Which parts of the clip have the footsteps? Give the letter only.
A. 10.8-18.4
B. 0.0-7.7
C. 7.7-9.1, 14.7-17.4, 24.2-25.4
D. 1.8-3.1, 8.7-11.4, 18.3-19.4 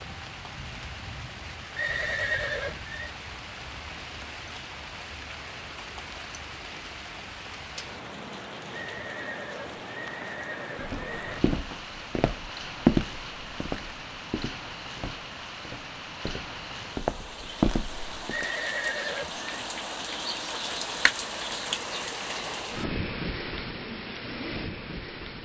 A.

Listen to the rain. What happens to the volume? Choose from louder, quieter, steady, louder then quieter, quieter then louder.
louder.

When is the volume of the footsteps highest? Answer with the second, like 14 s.
13 s.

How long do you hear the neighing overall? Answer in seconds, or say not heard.
5 s.